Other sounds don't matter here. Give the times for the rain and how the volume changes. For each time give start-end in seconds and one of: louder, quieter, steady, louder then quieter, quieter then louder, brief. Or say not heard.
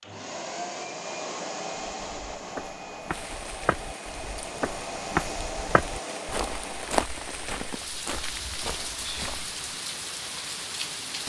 3.0-11.2 louder.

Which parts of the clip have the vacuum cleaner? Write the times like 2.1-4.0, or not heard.
0.0-7.0.